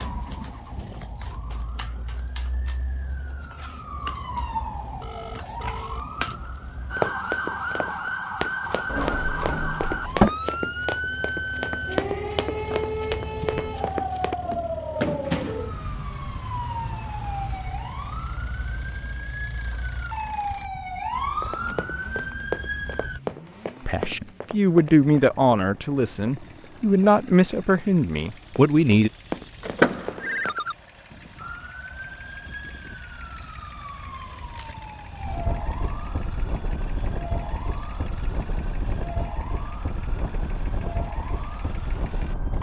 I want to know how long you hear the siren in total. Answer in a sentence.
You can hear the siren for 34 seconds altogether.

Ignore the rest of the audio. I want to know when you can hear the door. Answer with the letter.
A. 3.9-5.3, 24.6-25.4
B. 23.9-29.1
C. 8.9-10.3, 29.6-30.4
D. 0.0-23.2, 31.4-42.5
C.